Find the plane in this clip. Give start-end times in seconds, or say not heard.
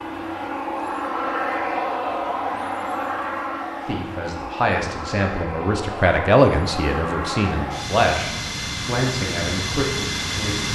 0.0-10.6.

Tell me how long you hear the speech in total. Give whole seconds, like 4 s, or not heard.
7 s.